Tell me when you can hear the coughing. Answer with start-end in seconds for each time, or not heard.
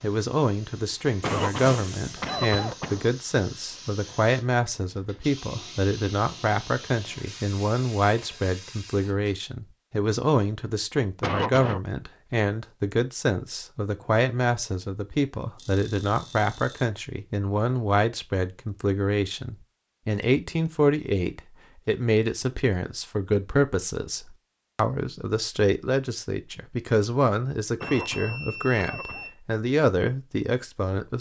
1.2-3.1, 11.2-11.8, 27.8-29.3.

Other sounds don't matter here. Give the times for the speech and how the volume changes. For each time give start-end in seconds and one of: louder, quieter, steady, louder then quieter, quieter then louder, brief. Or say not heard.
0.0-31.1 steady.